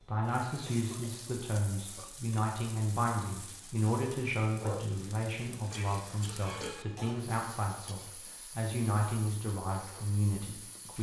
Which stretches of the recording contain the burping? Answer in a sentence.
The burping can be heard from 1.9 to 2.5 s and from 5.7 to 6.8 s.